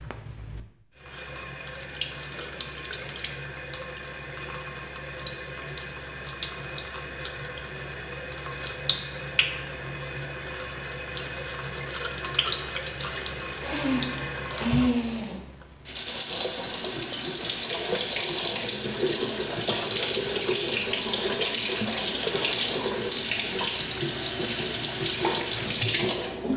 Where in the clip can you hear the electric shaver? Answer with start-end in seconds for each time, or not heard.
not heard.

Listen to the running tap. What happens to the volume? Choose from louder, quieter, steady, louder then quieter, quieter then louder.
louder.